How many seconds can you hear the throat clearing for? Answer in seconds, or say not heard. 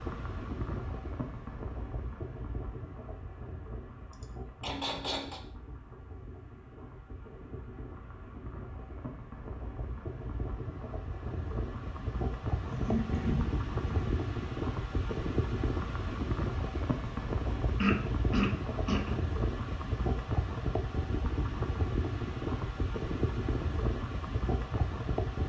4 s.